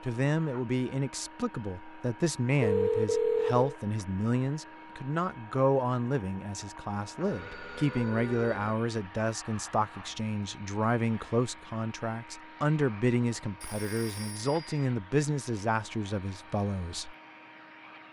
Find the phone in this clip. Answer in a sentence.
You can hear the phone from 2.6 to 3.7 s, from 7.2 to 8.8 s and from 13.6 to 14.8 s.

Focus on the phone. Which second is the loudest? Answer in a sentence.
The volume of the phone peaks at 3 seconds.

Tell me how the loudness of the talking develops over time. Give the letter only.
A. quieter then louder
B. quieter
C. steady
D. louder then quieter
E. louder
C.